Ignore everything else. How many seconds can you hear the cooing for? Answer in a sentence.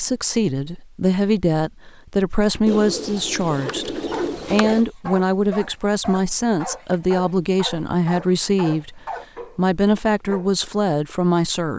You can hear the cooing for 2 seconds altogether.